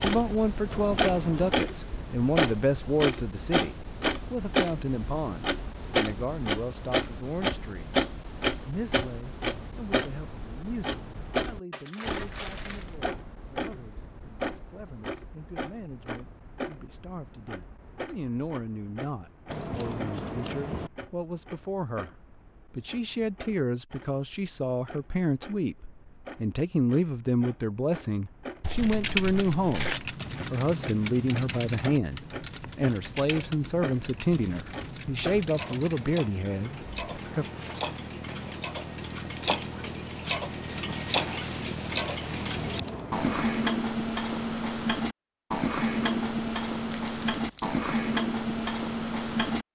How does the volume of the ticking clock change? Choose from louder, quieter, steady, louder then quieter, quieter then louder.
quieter then louder.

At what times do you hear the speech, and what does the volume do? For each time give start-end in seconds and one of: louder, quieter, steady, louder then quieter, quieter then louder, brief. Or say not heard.
0.0-8.1 quieter
8.7-37.5 louder.